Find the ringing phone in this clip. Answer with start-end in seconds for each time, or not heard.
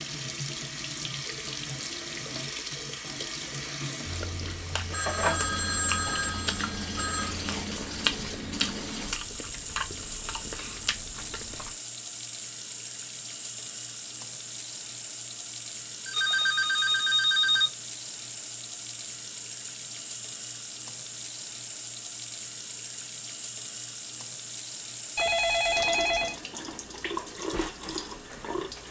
4.9-7.3, 16.1-17.7, 25.1-26.4.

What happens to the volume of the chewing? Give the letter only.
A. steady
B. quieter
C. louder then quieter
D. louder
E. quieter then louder
C.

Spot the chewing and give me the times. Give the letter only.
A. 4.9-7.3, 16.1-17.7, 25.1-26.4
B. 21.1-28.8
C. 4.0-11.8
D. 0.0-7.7
C.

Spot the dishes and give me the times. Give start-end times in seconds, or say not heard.
not heard.